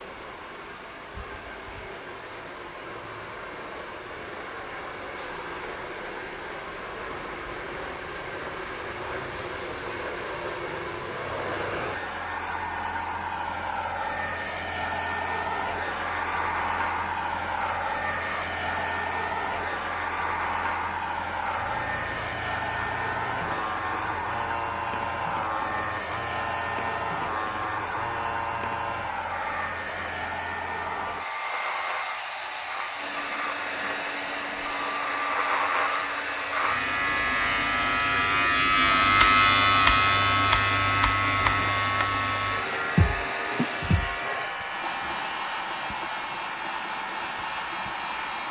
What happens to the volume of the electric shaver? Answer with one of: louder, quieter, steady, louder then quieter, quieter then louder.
louder then quieter.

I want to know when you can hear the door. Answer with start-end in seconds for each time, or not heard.
not heard.